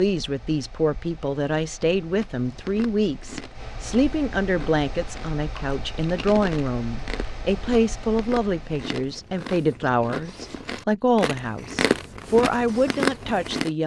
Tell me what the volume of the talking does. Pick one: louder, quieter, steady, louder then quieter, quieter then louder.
steady.